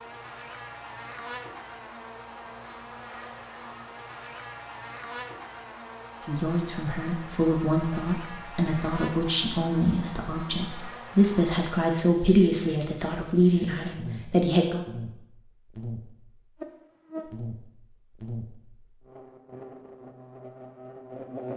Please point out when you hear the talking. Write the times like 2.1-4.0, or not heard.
6.2-14.8.